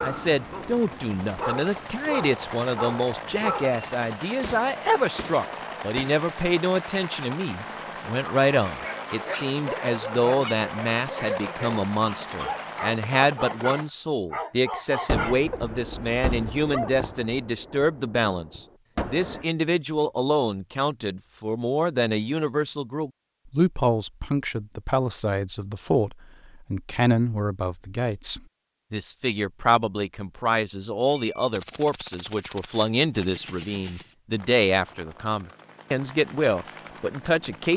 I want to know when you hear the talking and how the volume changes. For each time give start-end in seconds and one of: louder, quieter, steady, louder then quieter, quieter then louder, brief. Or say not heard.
0.0-37.7 steady.